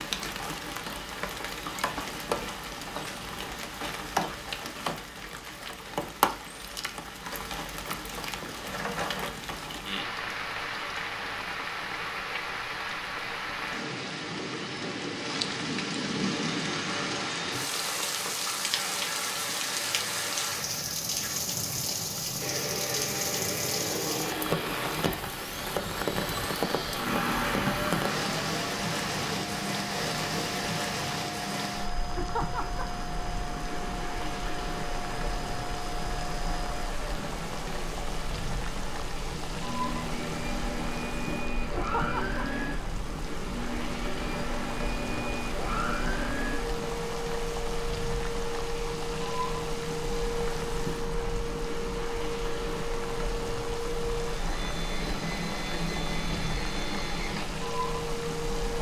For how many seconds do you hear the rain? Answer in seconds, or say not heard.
59 s.